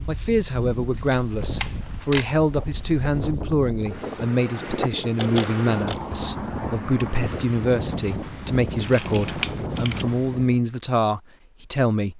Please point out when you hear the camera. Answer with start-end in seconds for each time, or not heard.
0.9-2.3, 5.2-6.0, 8.8-10.1.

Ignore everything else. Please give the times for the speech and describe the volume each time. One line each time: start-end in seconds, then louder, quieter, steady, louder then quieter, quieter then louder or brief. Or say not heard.
0.1-12.1 steady.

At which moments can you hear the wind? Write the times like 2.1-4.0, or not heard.
0.0-10.7.